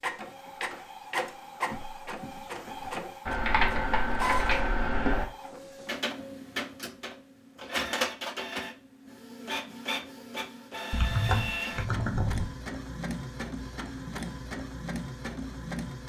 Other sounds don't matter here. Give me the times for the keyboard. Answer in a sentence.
The keyboard can be heard from 3.2 to 5.2 s and from 10.9 to 12.4 s.